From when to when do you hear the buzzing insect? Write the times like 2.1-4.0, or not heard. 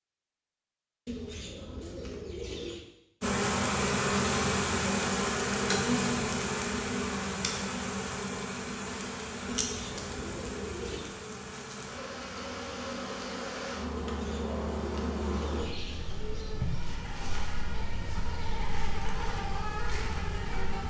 3.2-20.8.